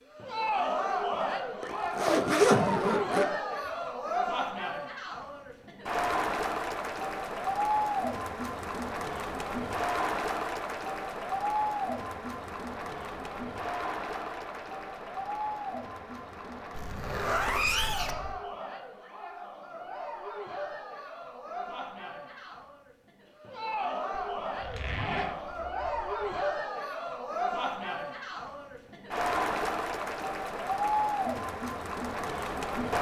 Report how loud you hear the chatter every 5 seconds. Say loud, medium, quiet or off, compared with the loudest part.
loud, loud, loud, medium, medium, loud, loud.